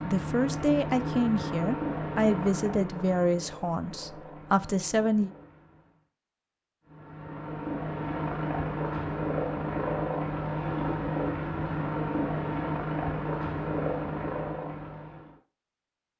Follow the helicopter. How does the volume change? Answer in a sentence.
The volume of the helicopter goes down, then up.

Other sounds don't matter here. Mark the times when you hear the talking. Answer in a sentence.
The talking can be heard from 0.0 to 5.3 s.